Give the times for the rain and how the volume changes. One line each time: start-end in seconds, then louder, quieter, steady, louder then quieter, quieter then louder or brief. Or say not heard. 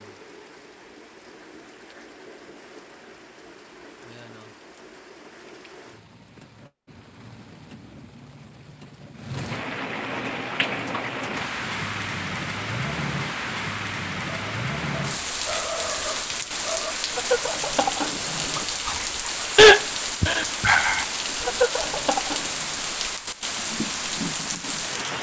0.0-25.1 louder.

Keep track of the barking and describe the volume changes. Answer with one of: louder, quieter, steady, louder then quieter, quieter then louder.
louder then quieter.